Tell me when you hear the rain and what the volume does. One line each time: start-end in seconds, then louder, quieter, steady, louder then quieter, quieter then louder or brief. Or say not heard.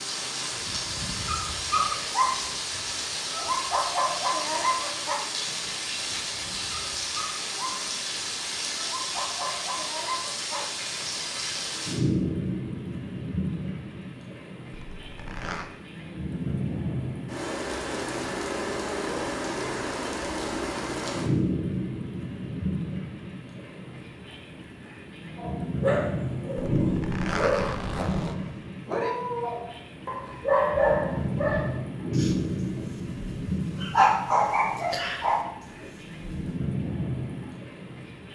0.0-38.3 steady.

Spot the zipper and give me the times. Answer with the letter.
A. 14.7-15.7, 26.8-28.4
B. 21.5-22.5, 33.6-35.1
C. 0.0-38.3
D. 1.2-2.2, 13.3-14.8
A.